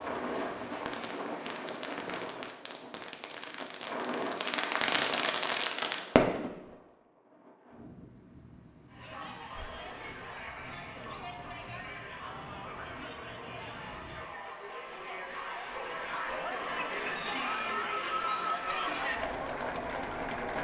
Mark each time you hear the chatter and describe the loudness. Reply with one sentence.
The chatter can be heard from 8.8 to 20.5 s, getting louder.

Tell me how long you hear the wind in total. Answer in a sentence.
The wind can be heard for 14 seconds in total.